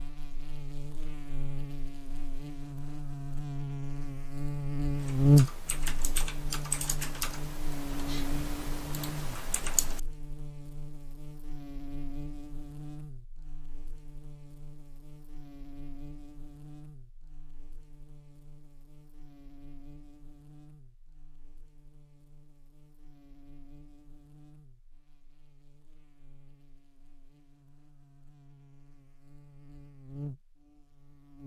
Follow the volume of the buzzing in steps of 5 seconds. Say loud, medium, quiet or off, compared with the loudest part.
medium, loud, quiet, quiet, quiet, quiet, quiet.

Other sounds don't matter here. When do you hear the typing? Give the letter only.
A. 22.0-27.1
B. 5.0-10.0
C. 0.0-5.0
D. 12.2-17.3
B.